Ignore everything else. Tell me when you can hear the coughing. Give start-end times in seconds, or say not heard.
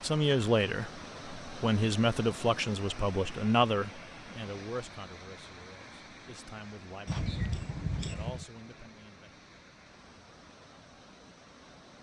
7.0-8.4.